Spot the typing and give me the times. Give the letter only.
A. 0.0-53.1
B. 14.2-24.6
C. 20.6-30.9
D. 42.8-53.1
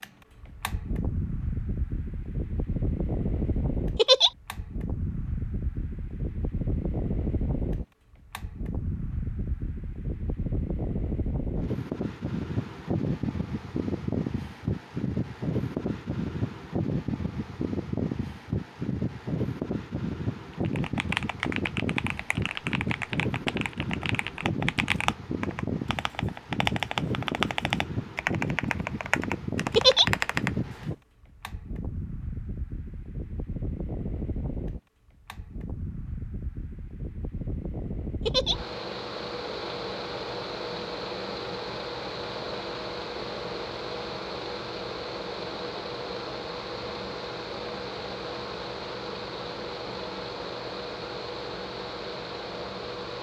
C.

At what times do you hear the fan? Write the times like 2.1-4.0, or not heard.
0.0-53.1.